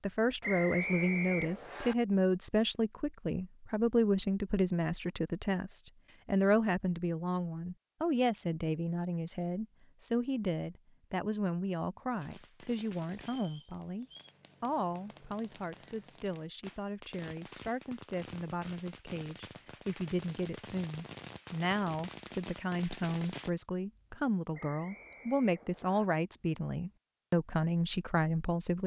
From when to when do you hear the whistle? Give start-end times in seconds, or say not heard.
0.4-1.9, 13.2-14.3, 24.5-26.1.